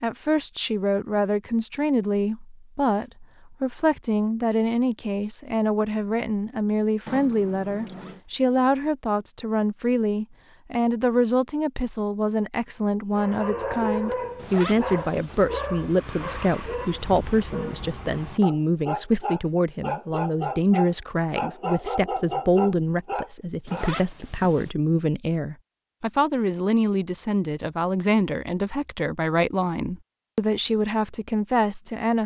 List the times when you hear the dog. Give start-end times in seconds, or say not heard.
13.1-24.0.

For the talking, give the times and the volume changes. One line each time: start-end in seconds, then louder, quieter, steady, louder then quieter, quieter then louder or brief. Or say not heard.
0.0-32.2 steady.